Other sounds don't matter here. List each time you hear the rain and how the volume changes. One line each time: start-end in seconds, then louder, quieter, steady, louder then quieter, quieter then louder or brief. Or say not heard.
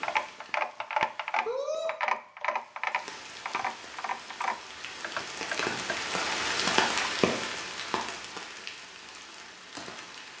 0.0-1.9 brief
2.8-10.3 louder then quieter.